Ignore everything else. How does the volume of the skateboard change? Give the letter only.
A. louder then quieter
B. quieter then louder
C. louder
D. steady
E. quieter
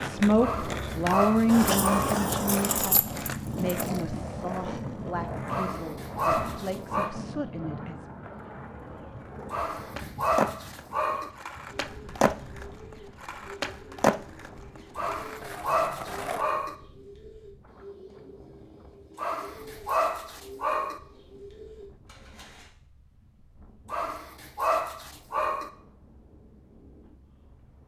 B.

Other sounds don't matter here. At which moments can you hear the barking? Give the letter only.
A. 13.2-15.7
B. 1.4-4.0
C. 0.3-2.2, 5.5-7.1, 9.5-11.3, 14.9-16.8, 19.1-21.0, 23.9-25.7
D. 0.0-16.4
C.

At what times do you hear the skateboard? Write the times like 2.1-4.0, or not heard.
0.0-16.4.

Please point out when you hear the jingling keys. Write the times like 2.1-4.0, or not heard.
1.4-4.0.